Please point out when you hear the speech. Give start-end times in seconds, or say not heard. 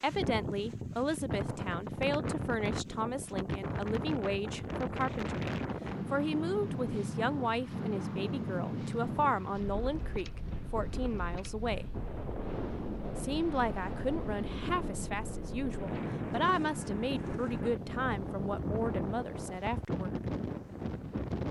0.0-11.9, 13.2-20.2.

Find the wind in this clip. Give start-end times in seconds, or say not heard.
0.0-21.4.